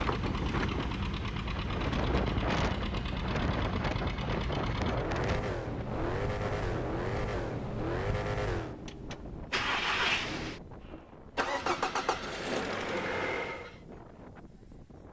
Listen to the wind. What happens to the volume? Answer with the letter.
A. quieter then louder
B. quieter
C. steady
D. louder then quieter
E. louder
B.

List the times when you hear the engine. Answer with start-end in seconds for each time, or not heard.
0.0-13.8.